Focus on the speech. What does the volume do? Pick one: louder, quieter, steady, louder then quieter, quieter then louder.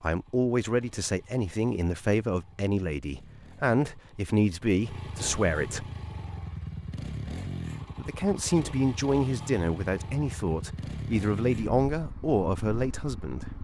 steady.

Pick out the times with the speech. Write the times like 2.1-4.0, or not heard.
0.0-5.8, 8.0-13.4.